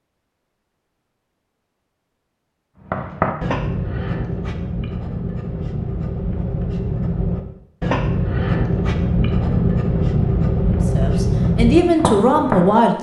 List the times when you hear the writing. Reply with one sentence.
You can hear the writing from 2.8 to 12.8 s.